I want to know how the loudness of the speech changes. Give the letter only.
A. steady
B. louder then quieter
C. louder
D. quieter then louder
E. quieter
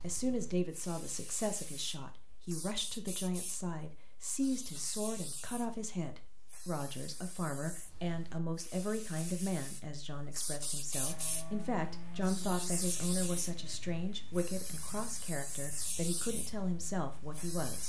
A.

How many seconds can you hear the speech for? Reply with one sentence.
The speech can be heard for 18 seconds in total.